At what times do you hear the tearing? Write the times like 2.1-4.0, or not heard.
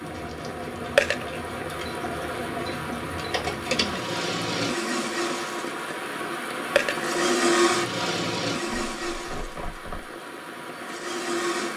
0.1-0.7, 8.7-10.2.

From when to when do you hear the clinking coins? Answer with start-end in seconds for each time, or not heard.
0.9-1.4, 6.8-7.2.